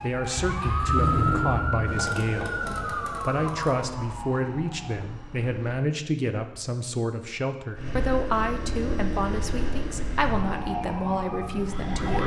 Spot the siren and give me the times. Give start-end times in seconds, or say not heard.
0.0-5.3, 10.4-12.2.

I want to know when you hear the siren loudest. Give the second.
1 s.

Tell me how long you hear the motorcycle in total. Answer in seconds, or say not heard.
10 s.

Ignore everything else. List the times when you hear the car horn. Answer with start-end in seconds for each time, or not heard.
not heard.